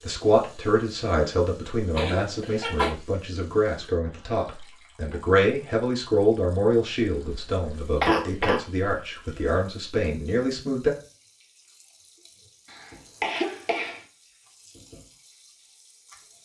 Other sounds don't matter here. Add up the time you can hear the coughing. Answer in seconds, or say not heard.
4 s.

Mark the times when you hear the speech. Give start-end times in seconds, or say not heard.
0.1-10.9.